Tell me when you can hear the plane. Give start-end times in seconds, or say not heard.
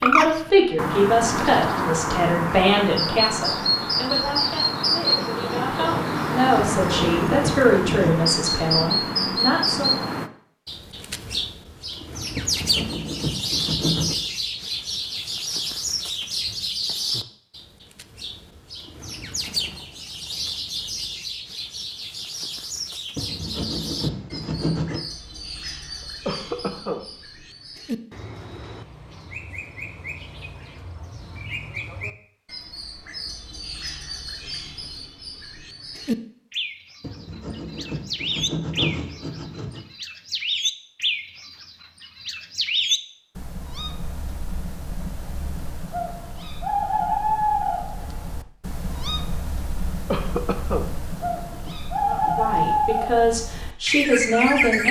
not heard.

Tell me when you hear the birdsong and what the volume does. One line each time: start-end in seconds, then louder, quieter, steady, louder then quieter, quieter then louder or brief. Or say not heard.
0.0-54.8 quieter then louder.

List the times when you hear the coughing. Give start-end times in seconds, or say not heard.
5.2-5.8, 26.2-27.1, 50.1-50.9.